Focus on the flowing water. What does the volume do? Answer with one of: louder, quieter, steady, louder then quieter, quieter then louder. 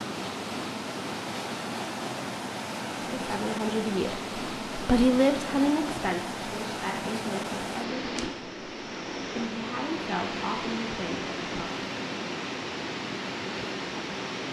steady.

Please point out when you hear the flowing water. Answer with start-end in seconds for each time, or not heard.
0.0-14.4.